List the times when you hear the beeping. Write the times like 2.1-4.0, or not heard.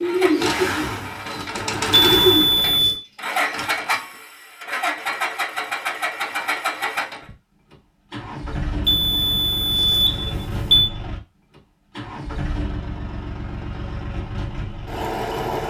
1.9-3.0, 8.8-10.9.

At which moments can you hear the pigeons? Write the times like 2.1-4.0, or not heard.
0.0-3.5.